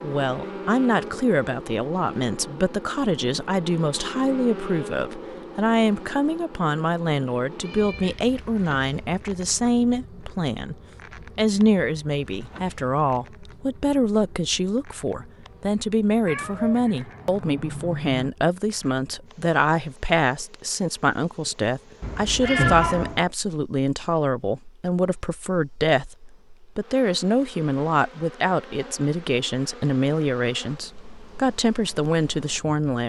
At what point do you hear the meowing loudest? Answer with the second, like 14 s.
23 s.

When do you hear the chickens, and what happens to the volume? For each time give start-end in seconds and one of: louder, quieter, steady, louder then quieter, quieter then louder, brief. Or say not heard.
not heard.